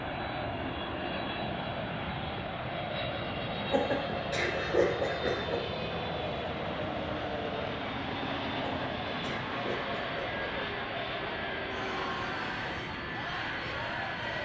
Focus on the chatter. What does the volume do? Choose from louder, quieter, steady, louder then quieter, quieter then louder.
steady.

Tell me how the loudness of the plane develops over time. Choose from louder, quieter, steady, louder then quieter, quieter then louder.
steady.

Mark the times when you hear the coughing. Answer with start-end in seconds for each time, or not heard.
3.7-5.6, 8.6-10.4.